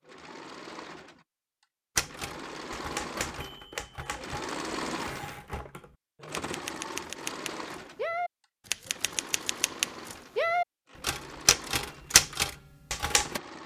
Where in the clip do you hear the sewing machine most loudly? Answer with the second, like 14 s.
5 s.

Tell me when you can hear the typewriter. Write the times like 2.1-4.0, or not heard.
1.9-13.4.